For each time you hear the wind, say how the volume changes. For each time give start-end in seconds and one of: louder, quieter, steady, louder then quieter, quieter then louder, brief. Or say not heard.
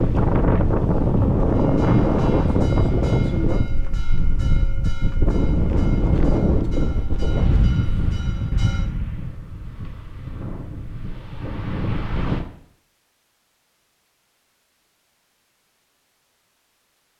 0.0-12.4 quieter.